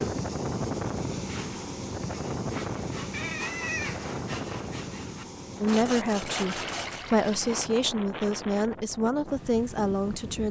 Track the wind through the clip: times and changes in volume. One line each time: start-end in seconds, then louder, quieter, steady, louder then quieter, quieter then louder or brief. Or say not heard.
0.0-10.4 quieter.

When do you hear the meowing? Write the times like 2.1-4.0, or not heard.
3.1-4.2.